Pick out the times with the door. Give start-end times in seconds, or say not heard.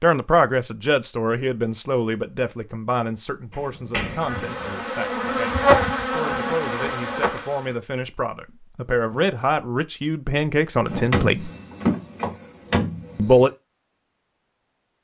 3.5-4.8, 10.8-13.4.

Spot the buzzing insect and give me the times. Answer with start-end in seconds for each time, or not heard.
4.2-7.8.